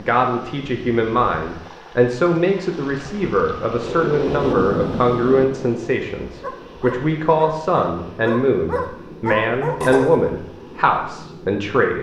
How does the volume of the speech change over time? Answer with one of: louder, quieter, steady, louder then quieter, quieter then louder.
steady.